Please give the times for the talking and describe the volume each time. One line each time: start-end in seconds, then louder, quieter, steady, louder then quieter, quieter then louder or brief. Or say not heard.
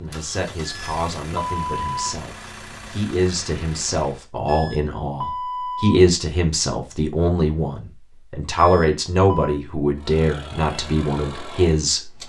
0.0-12.2 louder.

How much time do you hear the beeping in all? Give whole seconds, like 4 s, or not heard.
4 s.